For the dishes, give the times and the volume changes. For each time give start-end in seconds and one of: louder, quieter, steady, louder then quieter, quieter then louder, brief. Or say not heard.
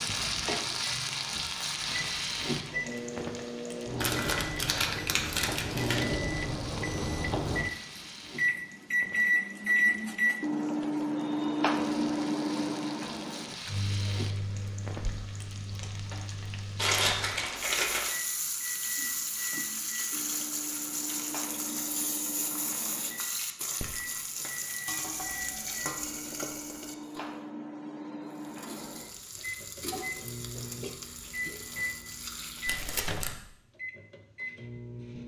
not heard.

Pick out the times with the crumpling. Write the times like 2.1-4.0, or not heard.
4.0-6.0, 16.8-18.1, 32.6-33.4.